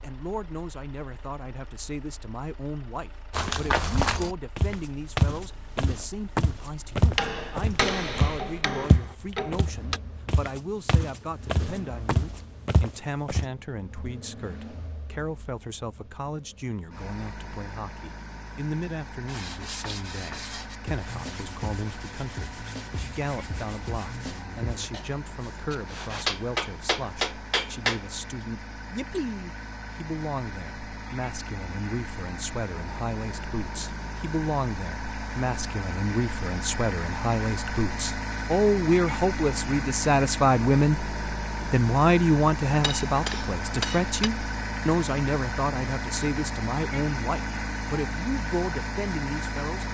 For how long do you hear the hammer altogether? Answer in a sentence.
You can hear the hammer for 6 seconds altogether.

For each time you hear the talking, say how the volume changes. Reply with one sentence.
The talking can be heard from 0.0 to 49.8 s, getting louder.